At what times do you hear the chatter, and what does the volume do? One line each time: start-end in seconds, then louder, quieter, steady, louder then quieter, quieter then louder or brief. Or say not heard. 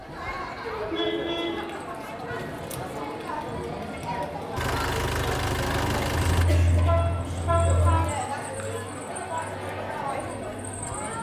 0.0-11.1 steady.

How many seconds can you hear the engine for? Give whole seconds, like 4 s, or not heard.
2 s.